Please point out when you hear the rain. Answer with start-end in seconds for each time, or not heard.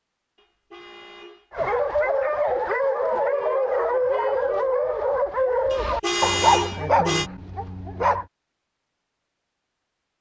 not heard.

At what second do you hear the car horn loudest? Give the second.
6 s.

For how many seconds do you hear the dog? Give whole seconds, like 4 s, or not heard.
7 s.